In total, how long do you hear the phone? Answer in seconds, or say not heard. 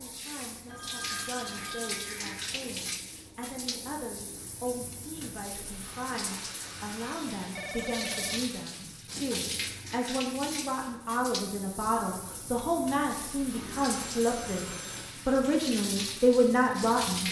5 s.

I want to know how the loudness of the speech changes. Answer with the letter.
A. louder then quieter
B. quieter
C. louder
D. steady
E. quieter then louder
C.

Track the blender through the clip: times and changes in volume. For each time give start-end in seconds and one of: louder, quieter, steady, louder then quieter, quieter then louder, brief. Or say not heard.
not heard.